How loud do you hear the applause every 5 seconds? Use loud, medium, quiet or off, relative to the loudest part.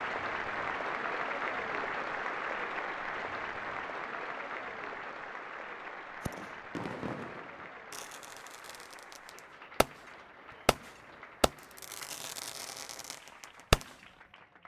loud, medium, quiet.